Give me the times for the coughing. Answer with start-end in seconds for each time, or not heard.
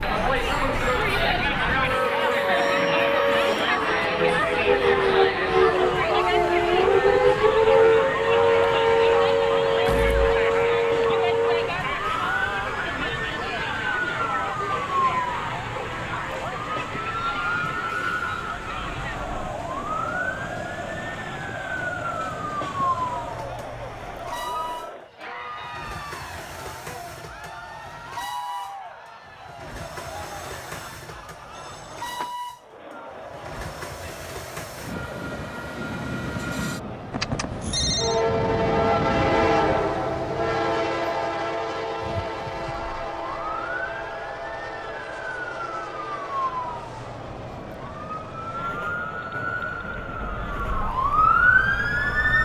not heard.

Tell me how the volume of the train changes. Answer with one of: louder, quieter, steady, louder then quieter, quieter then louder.
louder then quieter.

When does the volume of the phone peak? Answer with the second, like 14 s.
38 s.